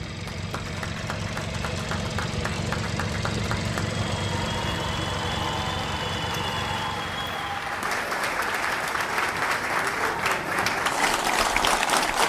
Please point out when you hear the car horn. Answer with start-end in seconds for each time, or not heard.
not heard.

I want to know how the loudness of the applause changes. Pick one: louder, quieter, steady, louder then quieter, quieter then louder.
louder.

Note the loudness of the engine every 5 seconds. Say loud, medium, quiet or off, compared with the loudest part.
loud, loud, off.